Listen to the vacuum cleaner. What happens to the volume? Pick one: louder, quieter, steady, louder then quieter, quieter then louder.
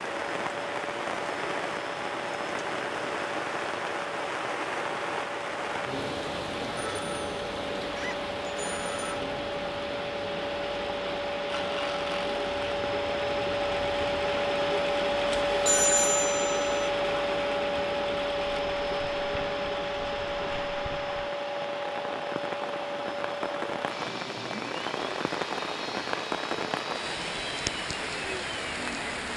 louder then quieter.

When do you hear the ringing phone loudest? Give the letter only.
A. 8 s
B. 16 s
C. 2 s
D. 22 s
B.